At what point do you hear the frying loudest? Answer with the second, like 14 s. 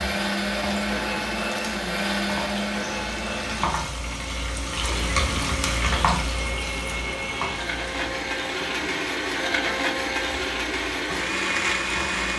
6 s.